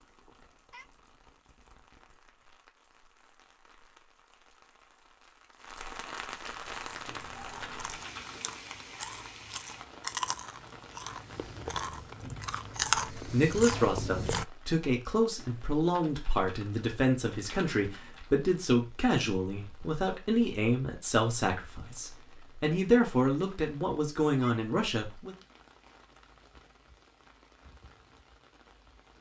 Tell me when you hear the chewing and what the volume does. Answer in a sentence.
You can hear the chewing from 6.6 to 14.4 s, getting louder.